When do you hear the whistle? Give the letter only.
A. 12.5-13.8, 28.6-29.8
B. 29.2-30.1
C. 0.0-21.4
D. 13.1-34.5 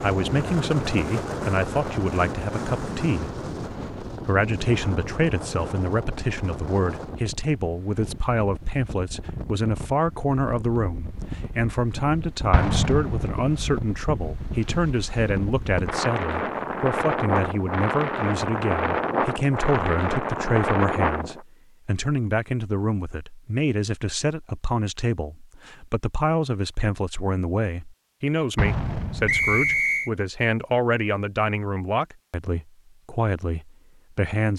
B.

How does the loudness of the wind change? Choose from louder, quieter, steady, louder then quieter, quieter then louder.
quieter then louder.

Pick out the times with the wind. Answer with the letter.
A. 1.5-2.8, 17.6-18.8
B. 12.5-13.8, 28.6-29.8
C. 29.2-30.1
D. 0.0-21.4
D.